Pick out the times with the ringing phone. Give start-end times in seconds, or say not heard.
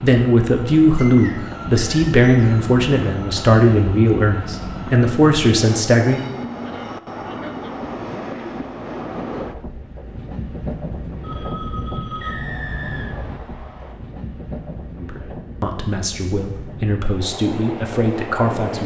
11.2-12.4.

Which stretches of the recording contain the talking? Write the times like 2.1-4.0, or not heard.
0.0-6.2, 14.9-18.8.